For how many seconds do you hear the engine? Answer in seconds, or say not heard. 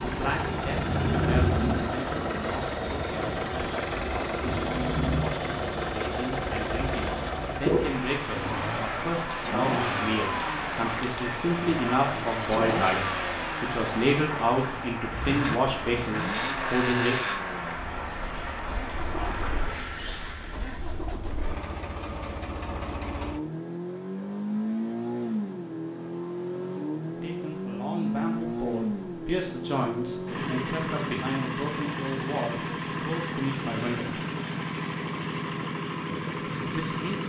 37 s.